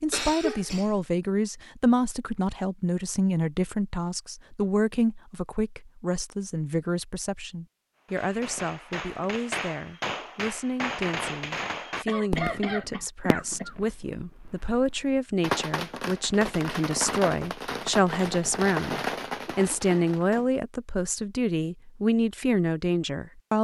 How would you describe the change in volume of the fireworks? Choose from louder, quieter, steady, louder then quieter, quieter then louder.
quieter then louder.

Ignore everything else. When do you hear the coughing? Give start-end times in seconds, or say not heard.
0.1-1.1, 12.1-13.8, 19.5-20.1.